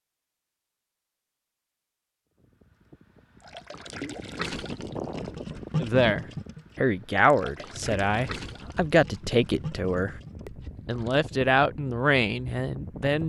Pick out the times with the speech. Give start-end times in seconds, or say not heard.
5.8-13.2.